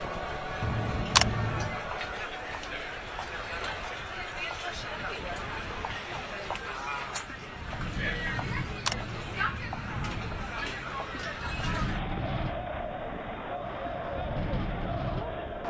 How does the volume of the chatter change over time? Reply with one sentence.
The volume of the chatter stays about the same.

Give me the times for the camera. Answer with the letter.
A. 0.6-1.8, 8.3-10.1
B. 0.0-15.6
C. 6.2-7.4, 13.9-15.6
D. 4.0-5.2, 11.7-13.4
A.